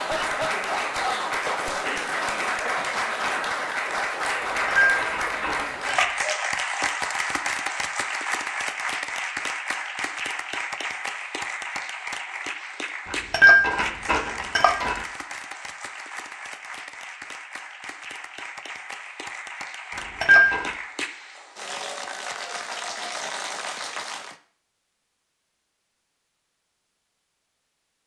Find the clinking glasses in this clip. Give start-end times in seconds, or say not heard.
4.4-6.2, 13.1-15.1, 19.9-20.8.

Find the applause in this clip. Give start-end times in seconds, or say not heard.
0.0-24.4.